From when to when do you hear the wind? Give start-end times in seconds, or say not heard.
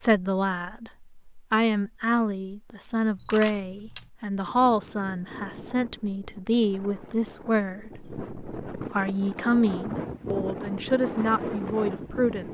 4.5-12.4.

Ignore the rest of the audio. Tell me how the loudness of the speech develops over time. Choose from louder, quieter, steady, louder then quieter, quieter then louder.
steady.